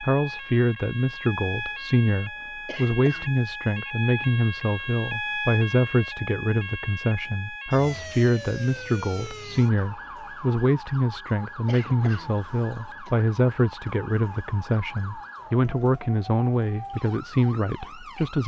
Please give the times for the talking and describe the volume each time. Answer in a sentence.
You can hear the talking from 0.0 to 18.4 s, at a steady volume.